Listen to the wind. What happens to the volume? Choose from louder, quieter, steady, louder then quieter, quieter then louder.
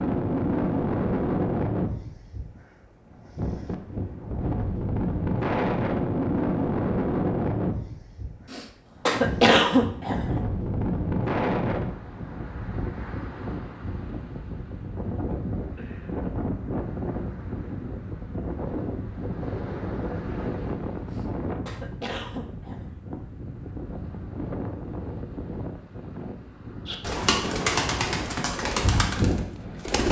quieter.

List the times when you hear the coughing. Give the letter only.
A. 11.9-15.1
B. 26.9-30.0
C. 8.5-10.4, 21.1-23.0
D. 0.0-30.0
C.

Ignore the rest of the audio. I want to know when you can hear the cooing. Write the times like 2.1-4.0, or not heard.
26.9-30.0.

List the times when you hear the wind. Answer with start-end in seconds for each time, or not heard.
0.0-30.0.